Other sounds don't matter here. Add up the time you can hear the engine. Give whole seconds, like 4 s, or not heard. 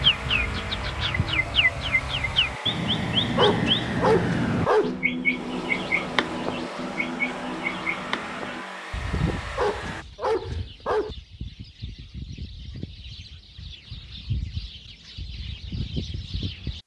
10 s.